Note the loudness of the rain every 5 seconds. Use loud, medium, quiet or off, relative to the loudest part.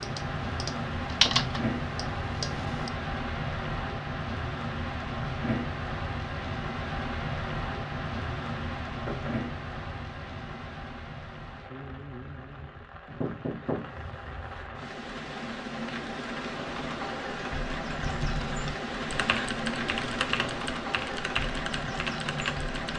loud, loud, medium, loud, loud.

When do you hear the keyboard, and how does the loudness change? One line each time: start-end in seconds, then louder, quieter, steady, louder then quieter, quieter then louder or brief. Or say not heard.
0.0-2.9 brief
18.0-22.9 louder.